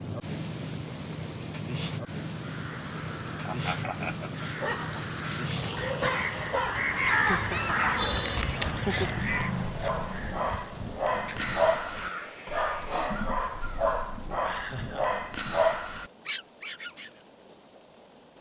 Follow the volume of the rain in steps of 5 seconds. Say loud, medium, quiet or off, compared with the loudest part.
loud, loud, medium, quiet.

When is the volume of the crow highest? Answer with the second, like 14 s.
7 s.